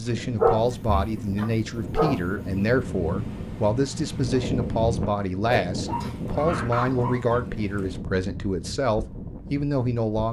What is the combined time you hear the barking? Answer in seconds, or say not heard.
3 s.